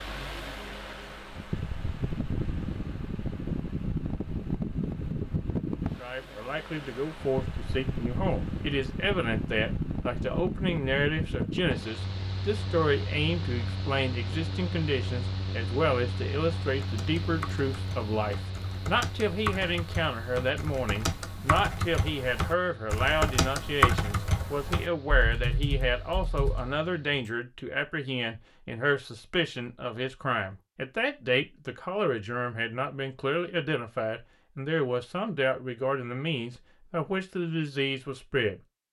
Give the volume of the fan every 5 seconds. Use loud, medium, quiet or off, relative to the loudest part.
loud, loud, loud, medium, quiet, quiet, off, off.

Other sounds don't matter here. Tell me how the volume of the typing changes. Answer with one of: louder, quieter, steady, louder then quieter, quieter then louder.
louder then quieter.